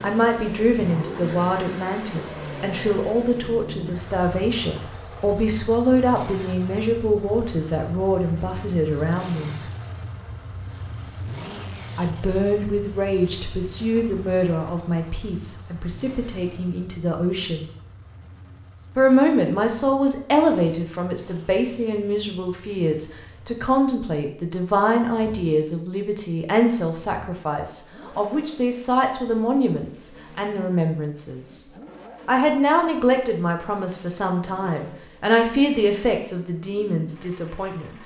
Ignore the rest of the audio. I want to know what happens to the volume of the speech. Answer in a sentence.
The volume of the speech stays about the same.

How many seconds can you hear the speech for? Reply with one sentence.
The speech can be heard for 34 seconds in total.